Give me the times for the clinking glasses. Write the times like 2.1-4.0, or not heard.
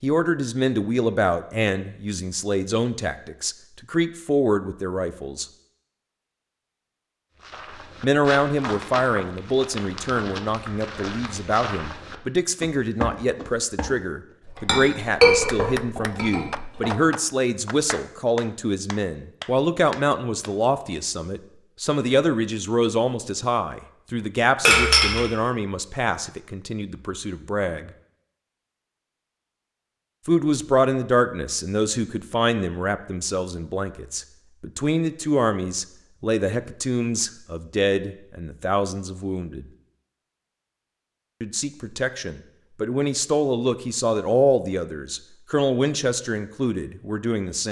14.4-16.9, 24.6-25.2.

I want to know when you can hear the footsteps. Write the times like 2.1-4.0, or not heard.
7.4-13.9.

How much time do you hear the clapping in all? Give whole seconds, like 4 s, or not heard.
5 s.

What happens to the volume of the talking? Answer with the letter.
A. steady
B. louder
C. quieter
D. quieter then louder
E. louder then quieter
A.